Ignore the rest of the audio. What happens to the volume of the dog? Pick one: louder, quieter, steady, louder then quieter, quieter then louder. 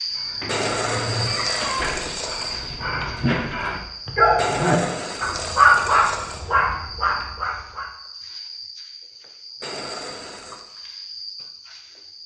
louder then quieter.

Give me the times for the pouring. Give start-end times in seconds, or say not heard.
0.5-2.5, 4.3-6.5, 9.6-10.6.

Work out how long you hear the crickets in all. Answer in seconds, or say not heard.
12 s.